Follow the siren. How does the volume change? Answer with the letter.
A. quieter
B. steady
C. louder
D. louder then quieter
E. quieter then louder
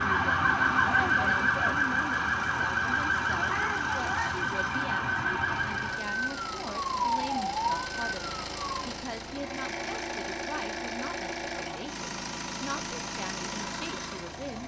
A.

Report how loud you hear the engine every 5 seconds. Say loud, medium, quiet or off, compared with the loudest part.
medium, loud, loud.